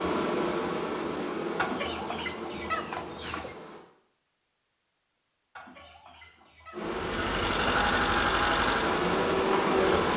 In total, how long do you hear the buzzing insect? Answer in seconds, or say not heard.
7 s.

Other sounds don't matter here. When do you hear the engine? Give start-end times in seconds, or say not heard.
6.8-10.1.